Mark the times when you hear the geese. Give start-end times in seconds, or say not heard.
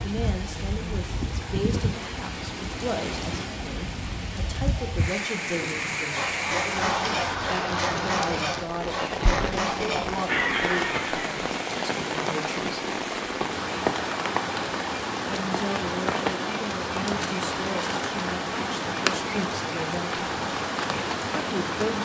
5.5-11.3.